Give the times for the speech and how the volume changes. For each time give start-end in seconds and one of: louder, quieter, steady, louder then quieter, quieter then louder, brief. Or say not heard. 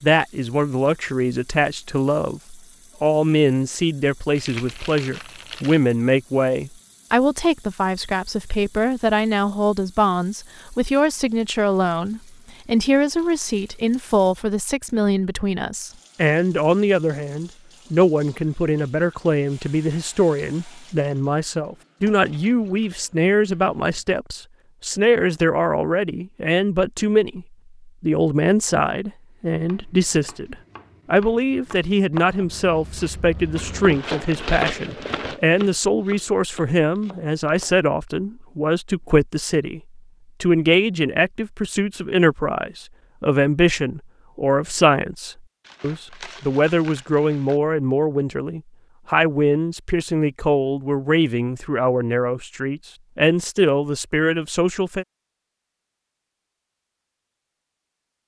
0.0-55.0 steady.